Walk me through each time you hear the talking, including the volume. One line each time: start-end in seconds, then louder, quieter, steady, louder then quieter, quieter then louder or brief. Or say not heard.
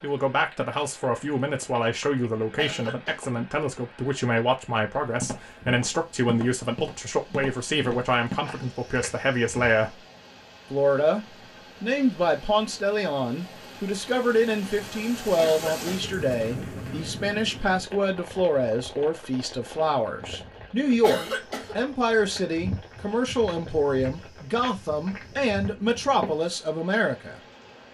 0.0-10.0 steady
10.7-27.4 steady.